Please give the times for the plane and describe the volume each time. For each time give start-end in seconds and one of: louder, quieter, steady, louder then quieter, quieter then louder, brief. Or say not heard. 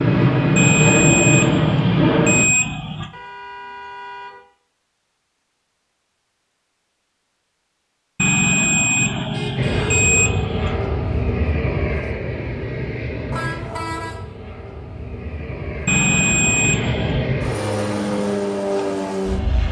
0.0-2.5 brief
9.6-19.6 quieter then louder.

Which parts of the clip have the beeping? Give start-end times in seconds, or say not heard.
0.6-3.1, 8.2-10.8, 15.8-17.4.